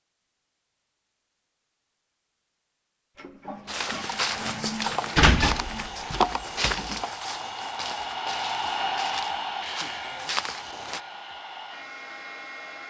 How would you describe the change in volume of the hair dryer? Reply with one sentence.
The loudness of the hair dryer goes up, then down.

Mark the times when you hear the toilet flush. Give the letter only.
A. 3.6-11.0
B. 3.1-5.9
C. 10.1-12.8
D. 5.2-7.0
B.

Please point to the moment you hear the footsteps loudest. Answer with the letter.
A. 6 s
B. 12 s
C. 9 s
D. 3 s
A.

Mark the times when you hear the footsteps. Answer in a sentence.
The footsteps can be heard from 3.6 to 11.0 s.